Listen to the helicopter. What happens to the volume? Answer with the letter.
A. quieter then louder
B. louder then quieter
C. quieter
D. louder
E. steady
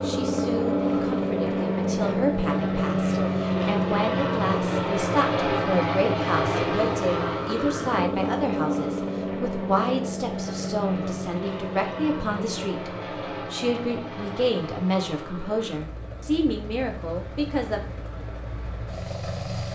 C.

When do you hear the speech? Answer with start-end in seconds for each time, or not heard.
0.0-17.8.